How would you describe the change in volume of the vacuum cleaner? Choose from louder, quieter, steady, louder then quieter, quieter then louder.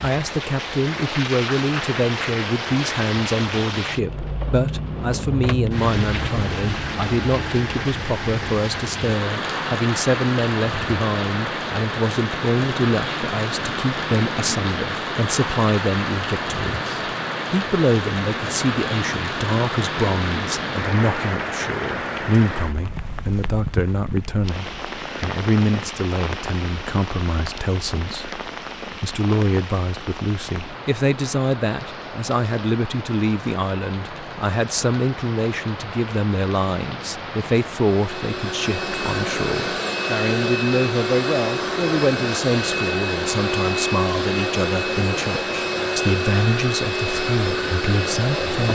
steady.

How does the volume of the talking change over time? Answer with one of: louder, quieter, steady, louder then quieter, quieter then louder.
steady.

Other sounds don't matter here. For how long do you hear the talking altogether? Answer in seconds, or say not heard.
49 s.